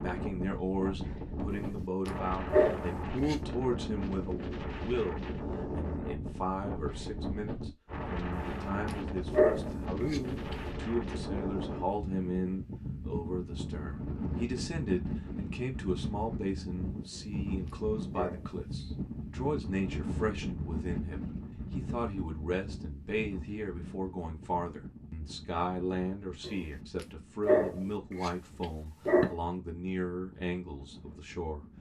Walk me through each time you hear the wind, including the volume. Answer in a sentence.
The wind can be heard from 0.0 to 31.7 s, getting quieter.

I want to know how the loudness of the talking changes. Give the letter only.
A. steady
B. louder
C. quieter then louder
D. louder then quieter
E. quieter
A.